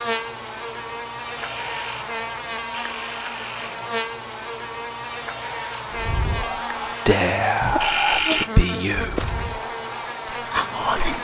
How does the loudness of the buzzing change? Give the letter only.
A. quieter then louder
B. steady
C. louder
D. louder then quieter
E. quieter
B.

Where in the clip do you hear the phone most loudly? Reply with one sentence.
The volume of the phone peaks at 8 seconds.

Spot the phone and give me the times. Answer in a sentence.
You can hear the phone from 1.4 to 3.8 s and from 7.8 to 8.8 s.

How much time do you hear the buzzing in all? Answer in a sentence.
You can hear the buzzing for 11 seconds altogether.